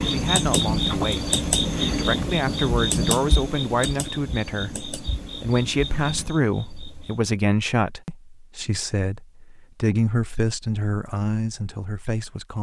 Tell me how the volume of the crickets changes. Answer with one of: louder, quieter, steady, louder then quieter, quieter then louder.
quieter.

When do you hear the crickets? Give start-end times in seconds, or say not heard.
0.0-7.3.